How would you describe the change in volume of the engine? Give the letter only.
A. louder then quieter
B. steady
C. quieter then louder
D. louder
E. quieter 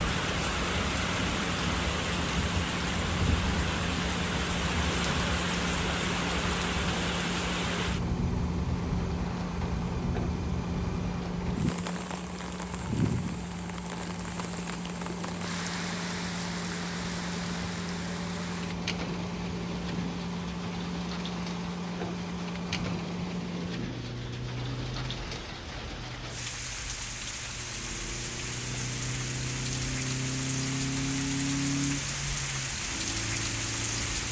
B.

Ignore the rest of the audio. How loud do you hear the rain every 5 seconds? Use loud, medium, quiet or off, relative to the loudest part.
loud, loud, medium, medium, medium, medium, loud.